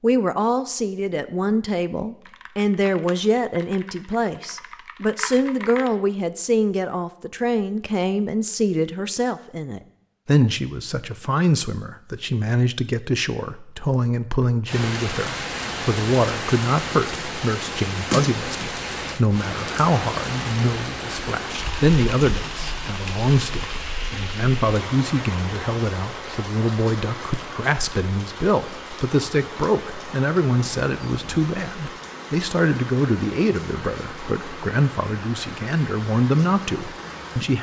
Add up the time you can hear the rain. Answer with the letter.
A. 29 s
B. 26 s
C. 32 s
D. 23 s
D.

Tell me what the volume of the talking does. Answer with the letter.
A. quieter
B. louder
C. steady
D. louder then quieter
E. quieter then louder
C.